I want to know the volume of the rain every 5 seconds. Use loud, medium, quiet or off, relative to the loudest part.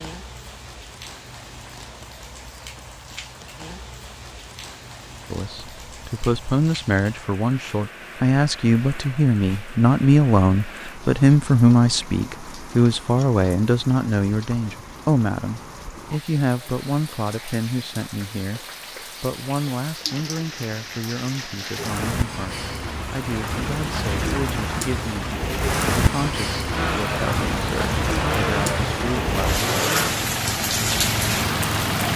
quiet, quiet, quiet, quiet, medium, loud, loud.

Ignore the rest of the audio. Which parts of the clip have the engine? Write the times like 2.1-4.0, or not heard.
26.7-32.1.